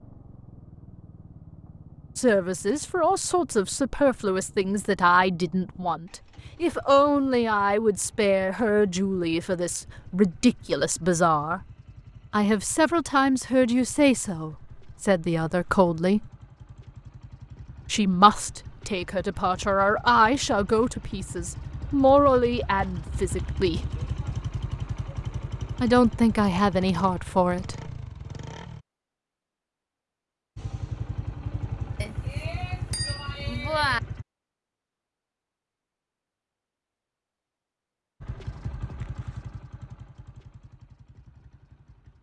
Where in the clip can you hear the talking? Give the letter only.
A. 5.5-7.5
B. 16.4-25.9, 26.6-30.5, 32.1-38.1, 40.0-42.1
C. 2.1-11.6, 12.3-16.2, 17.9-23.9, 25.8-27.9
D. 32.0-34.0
C.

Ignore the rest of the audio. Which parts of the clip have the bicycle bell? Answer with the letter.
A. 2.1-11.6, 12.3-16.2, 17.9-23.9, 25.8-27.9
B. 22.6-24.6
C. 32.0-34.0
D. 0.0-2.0
C.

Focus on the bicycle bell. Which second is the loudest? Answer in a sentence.
The volume of the bicycle bell peaks at 34 seconds.